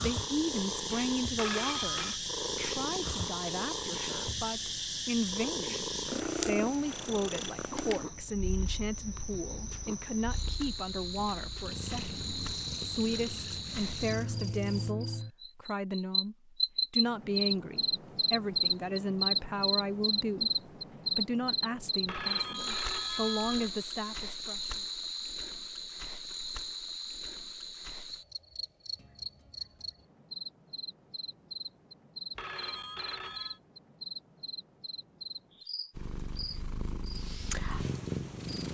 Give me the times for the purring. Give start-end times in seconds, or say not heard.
0.0-14.9, 36.0-38.6.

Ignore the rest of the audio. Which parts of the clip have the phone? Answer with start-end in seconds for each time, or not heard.
1.4-2.2, 22.1-23.7, 32.4-33.6.